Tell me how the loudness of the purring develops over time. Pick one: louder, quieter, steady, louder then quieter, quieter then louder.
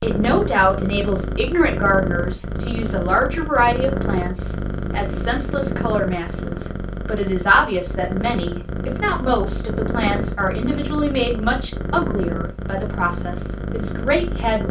steady.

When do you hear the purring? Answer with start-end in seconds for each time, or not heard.
0.0-14.6.